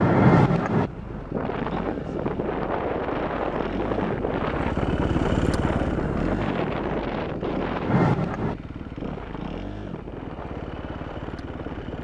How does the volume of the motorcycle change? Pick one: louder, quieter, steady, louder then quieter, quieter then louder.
louder then quieter.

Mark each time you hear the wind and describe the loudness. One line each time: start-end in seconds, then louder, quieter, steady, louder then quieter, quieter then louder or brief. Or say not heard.
0.0-11.9 quieter.